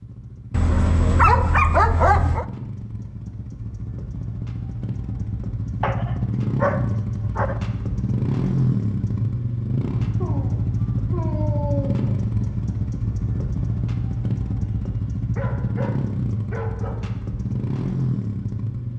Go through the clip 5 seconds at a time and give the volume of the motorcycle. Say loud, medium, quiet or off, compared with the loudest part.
medium, loud, loud, loud.